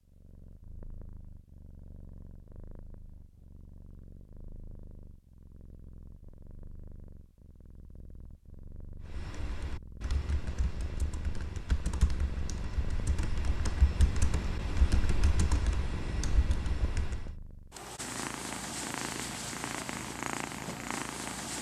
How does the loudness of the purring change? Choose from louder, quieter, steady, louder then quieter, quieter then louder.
louder.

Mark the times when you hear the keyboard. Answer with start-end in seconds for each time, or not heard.
9.0-17.4.